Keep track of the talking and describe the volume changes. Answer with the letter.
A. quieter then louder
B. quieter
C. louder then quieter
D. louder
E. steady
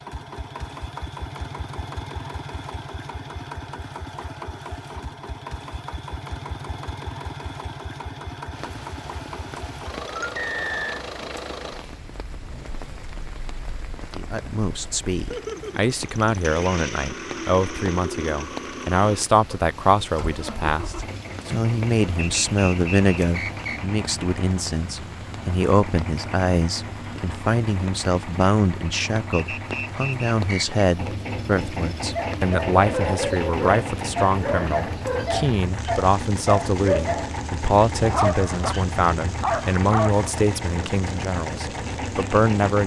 E.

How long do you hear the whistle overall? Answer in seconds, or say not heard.
4 s.